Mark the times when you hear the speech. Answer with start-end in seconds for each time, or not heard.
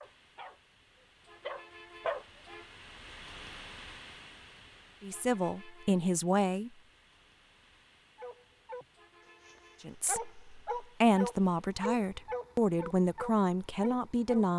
5.0-6.7, 9.8-14.5.